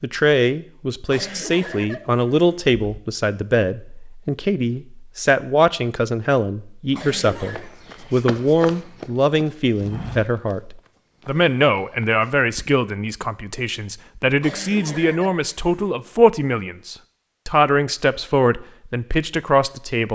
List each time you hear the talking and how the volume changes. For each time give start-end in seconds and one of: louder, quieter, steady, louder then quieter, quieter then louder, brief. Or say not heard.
0.0-20.0 steady.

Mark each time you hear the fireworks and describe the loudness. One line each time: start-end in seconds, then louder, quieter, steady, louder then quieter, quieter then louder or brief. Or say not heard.
not heard.